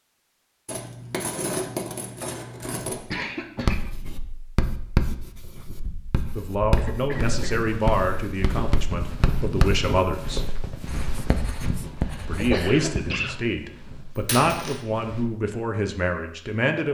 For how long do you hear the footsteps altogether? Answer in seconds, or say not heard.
8 s.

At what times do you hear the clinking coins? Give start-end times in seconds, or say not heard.
0.7-3.0, 14.2-14.8.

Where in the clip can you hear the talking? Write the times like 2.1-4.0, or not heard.
6.3-10.4, 12.2-16.9.